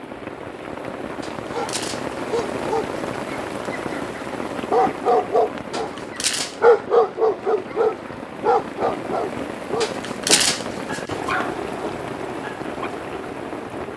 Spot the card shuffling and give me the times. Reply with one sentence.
You can hear the card shuffling from 1.2 to 2.2 s, from 5.7 to 6.7 s and from 9.8 to 11.3 s.